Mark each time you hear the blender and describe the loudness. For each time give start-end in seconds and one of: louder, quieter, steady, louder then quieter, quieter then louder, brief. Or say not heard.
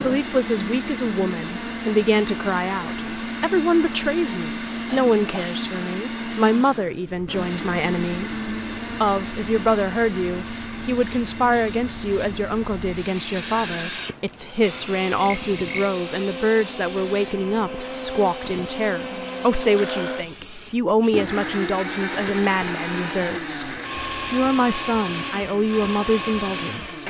0.0-27.0 quieter then louder.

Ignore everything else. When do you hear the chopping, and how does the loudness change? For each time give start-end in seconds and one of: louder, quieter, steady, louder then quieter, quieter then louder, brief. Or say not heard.
not heard.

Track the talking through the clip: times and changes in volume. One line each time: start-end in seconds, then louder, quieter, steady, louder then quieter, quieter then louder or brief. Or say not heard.
0.0-27.0 steady.